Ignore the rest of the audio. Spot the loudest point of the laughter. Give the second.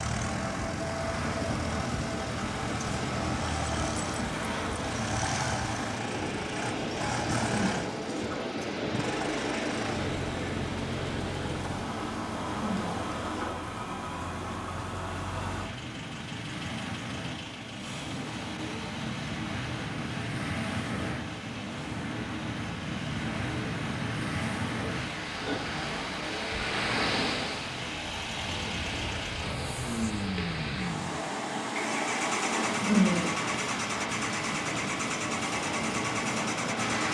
33 s.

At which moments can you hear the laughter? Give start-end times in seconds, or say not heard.
7.5-8.3, 12.6-13.4, 32.8-33.2.